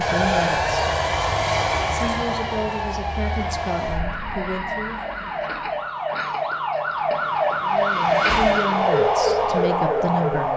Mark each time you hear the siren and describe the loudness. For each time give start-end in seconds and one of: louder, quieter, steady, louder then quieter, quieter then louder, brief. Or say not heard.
0.0-10.5 louder.